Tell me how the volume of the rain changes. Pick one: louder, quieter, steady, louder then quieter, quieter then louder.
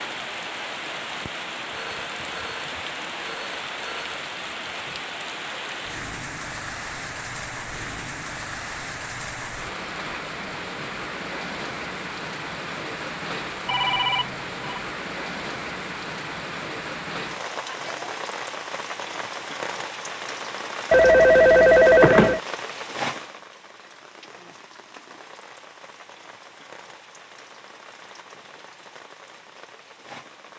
quieter.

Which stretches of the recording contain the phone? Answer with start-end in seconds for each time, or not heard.
1.7-4.2, 13.7-14.8, 20.9-22.4.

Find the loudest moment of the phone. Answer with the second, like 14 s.
22 s.